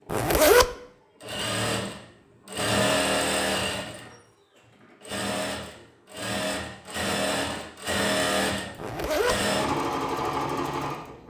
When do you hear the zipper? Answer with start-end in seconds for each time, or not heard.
0.1-0.7, 8.8-9.4.